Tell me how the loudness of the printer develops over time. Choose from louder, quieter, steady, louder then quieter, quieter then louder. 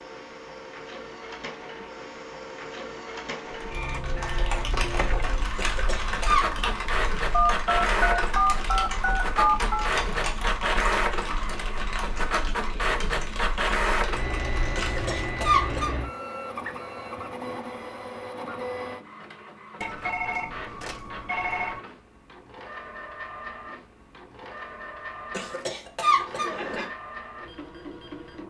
louder then quieter.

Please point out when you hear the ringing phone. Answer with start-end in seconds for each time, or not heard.
7.3-9.9, 19.8-21.8.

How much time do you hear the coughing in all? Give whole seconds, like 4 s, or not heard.
4 s.